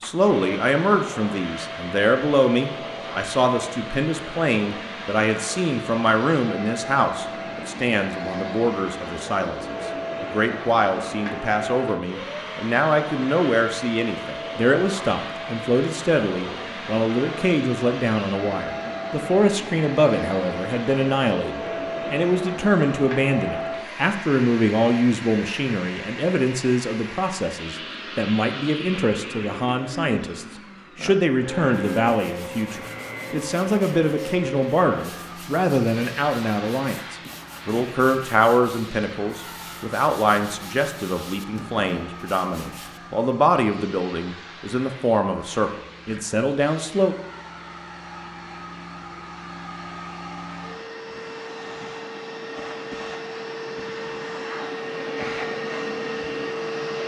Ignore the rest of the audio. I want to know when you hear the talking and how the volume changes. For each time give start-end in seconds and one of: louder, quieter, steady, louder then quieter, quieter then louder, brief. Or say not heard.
0.0-47.1 steady.